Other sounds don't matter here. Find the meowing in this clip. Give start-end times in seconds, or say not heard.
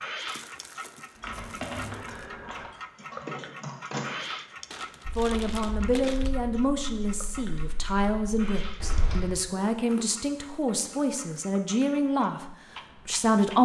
not heard.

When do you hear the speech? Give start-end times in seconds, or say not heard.
5.2-13.6.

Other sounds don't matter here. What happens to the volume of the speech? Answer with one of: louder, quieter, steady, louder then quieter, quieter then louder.
steady.